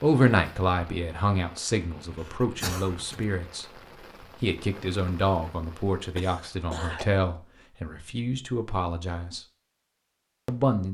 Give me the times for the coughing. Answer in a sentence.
You can hear the coughing from 2.2 to 3.2 s and from 6.2 to 7.0 s.